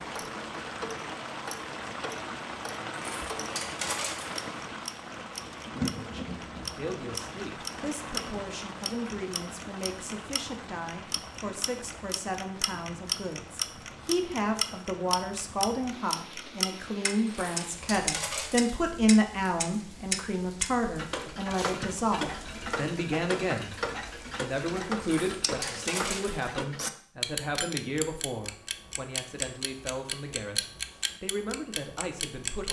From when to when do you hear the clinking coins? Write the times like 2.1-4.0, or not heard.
2.9-4.5, 17.2-18.8, 25.0-26.6.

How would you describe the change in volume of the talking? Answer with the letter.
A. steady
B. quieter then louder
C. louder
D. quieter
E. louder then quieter
E.